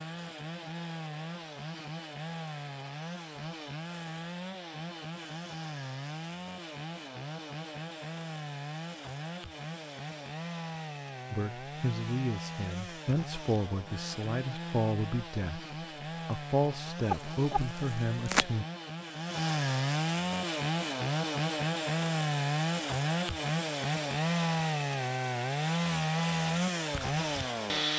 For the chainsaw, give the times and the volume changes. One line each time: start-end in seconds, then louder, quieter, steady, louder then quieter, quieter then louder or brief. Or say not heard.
0.0-27.9 louder.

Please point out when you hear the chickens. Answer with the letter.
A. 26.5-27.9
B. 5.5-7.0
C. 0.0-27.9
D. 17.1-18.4
D.